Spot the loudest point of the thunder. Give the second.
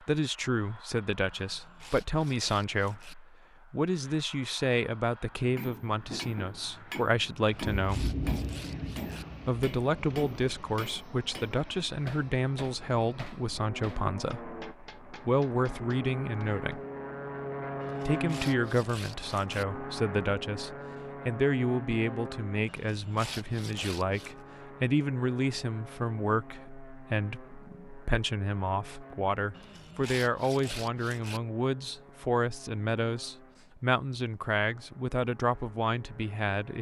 8 s.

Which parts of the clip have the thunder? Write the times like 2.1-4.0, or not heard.
7.5-10.8.